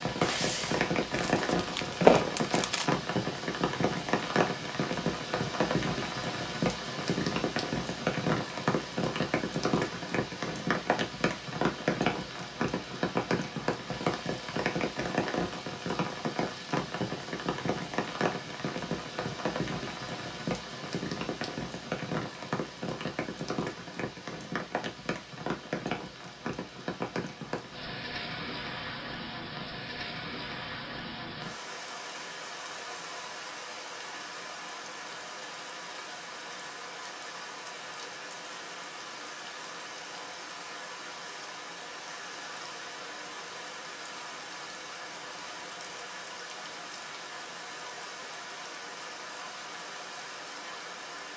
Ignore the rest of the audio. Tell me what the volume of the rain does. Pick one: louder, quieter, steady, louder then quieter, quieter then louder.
quieter.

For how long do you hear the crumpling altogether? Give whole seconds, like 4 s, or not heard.
3 s.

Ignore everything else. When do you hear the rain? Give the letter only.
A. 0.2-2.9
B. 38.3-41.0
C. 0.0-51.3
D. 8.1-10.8
C.